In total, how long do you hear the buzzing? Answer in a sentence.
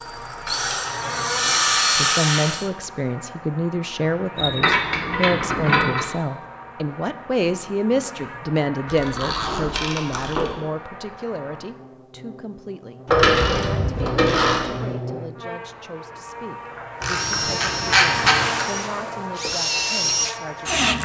The buzzing can be heard for 21 seconds in total.